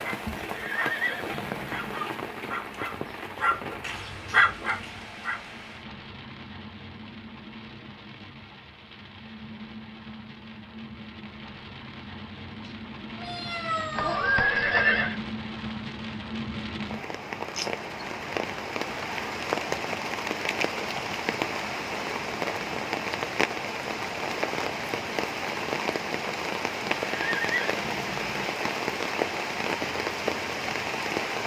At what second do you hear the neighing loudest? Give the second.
15 s.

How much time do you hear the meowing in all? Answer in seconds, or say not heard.
2 s.